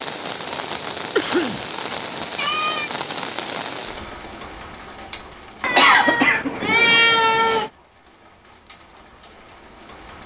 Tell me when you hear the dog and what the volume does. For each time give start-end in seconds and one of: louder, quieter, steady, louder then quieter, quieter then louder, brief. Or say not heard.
not heard.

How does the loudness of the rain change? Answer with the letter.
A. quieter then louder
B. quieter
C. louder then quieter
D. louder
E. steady
B.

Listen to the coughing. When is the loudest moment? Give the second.
6 s.